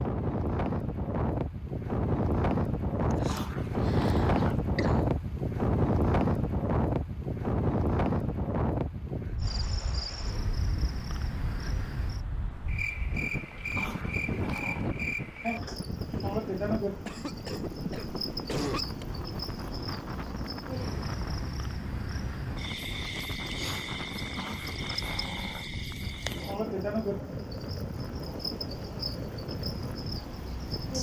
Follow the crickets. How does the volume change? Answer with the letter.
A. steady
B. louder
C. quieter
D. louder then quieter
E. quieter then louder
A.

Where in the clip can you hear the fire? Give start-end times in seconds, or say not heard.
not heard.